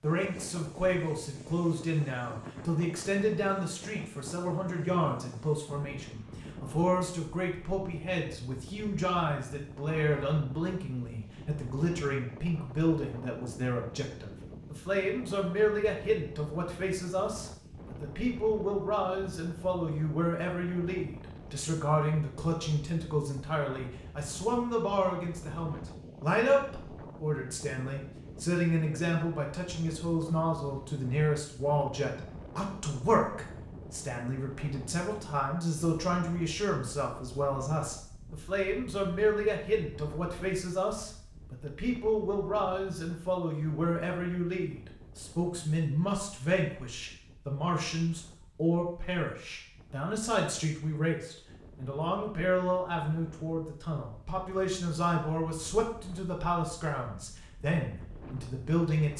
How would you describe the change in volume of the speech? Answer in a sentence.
The loudness of the speech stays about the same.